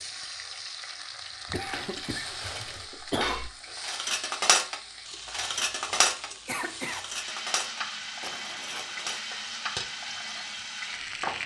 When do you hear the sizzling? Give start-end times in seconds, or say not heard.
0.0-11.4.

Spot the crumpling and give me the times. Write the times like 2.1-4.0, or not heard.
1.4-2.9, 8.2-9.2.